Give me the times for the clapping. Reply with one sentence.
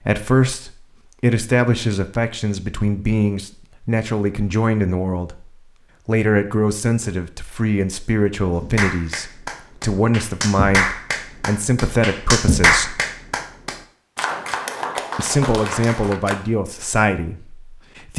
The clapping can be heard from 8.6 to 16.4 s.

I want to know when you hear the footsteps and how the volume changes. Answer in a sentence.
You can't hear the footsteps here.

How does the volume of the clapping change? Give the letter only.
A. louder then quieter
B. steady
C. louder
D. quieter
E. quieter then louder
A.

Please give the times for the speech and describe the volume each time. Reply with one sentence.
You can hear the speech from 0.0 to 13.0 s, at a steady volume; and briefly from 15.2 to 18.1 s.